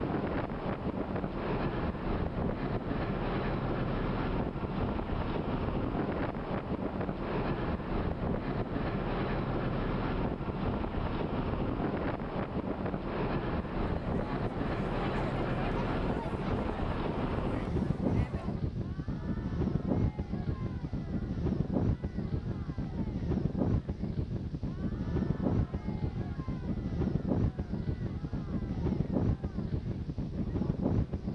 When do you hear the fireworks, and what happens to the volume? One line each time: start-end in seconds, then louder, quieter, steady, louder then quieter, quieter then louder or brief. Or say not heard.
not heard.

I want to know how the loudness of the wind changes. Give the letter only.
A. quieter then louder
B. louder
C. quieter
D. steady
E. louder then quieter
D.